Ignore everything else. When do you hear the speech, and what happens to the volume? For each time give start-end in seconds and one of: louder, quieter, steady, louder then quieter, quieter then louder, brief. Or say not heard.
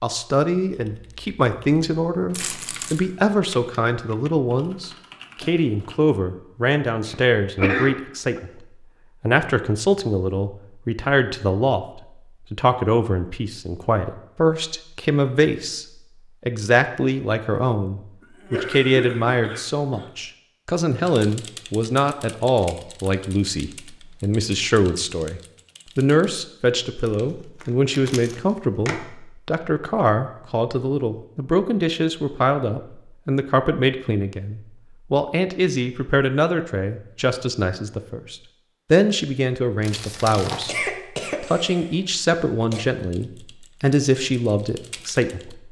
0.0-45.6 steady.